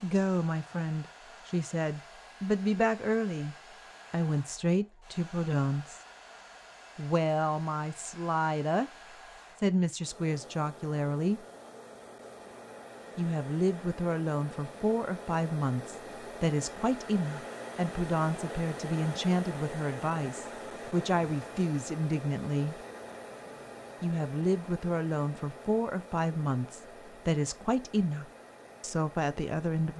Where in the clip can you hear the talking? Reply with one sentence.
You can hear the talking from 0.0 to 6.0 s, from 7.0 to 8.9 s, from 9.6 to 11.4 s, from 13.2 to 22.8 s and from 24.0 to 29.9 s.